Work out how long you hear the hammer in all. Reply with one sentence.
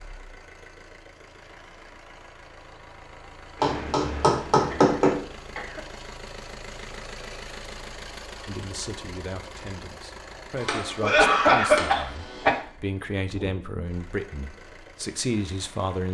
The hammer can be heard for 4 seconds in total.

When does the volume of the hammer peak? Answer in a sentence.
The loudest moment of the hammer is at 5 seconds.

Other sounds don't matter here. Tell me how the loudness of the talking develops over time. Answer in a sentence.
The volume of the talking goes up.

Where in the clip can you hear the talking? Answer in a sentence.
The talking can be heard from 8.4 to 16.0 s.